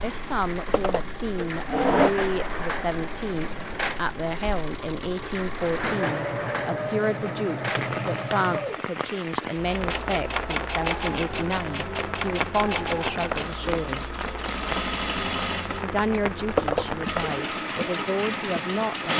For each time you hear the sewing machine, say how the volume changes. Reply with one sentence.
The sewing machine can be heard from 0.0 to 19.1 s, getting louder.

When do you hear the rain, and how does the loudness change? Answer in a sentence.
You can hear the rain from 0.0 to 19.1 s, at a steady volume.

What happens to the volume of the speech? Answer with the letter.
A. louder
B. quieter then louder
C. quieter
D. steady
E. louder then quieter
D.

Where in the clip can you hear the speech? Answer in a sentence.
You can hear the speech from 0.0 to 14.3 s and from 15.8 to 19.1 s.